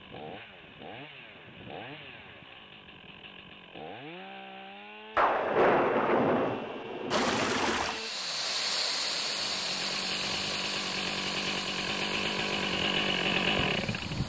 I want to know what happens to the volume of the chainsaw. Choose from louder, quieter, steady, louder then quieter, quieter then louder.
louder.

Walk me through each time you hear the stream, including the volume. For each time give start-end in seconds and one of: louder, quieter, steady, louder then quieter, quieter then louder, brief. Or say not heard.
7.1-14.2 quieter.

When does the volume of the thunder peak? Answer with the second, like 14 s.
6 s.